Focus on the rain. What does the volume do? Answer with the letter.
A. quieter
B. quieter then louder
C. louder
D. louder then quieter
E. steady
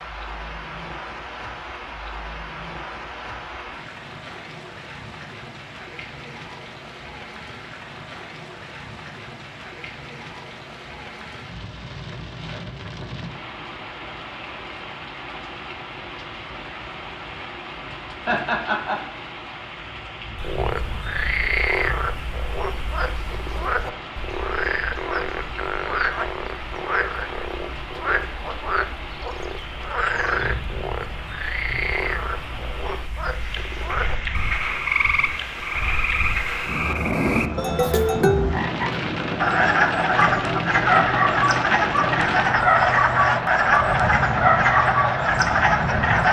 C.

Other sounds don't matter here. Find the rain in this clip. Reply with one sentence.
You can hear the rain from 0.0 to 46.2 s.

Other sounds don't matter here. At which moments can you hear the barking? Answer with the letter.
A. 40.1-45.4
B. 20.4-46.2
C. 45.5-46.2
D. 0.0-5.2
A.